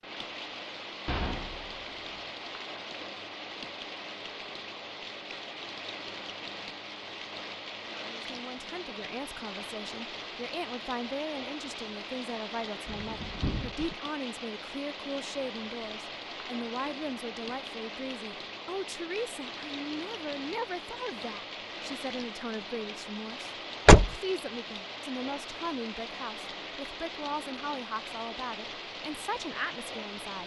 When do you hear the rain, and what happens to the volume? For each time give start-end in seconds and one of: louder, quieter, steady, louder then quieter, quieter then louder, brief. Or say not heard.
0.0-30.4 steady.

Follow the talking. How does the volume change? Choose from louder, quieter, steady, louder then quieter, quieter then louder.
steady.